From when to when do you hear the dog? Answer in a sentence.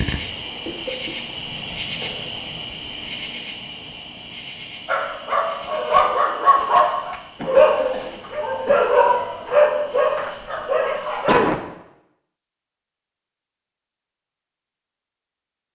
You can hear the dog from 4.8 to 11.4 s.